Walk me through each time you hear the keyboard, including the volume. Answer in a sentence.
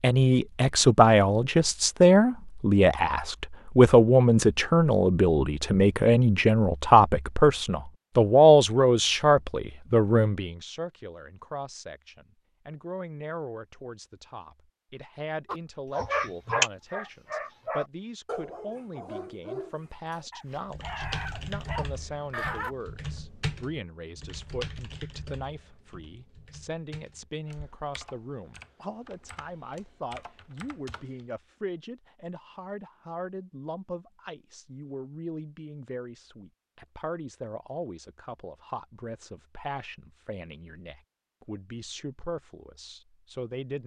You can hear the keyboard from 20.4 to 31.2 s, getting quieter.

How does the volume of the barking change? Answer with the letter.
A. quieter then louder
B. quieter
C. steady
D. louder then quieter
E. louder
A.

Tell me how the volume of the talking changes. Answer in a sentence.
The volume of the talking goes down.